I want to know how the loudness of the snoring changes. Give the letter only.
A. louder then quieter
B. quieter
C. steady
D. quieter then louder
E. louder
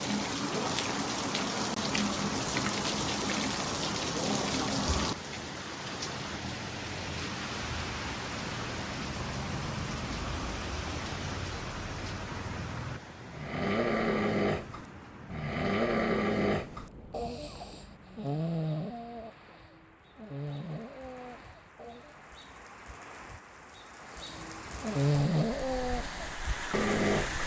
D.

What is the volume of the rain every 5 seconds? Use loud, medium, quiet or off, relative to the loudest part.
loud, medium, medium, quiet, quiet, medium.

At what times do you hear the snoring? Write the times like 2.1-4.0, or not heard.
13.2-22.4, 24.1-27.4.